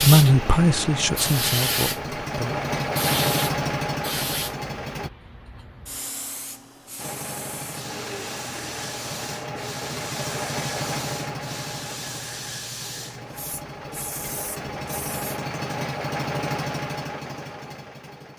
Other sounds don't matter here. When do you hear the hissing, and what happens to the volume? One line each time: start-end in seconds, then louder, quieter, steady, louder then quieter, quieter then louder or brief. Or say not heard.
0.0-15.4 quieter.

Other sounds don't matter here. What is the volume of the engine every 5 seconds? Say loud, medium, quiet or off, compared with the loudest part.
loud, medium, medium, loud.